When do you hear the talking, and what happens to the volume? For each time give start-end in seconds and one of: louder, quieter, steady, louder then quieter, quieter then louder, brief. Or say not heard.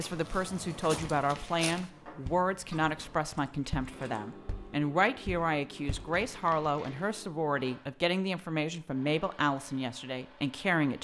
0.0-10.9 steady.